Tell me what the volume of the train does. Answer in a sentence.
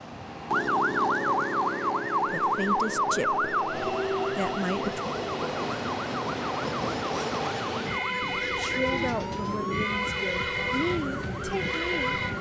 The volume of the train goes up.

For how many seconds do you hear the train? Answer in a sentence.
You can hear the train for 12 seconds altogether.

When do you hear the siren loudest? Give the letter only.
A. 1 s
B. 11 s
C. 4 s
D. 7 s
A.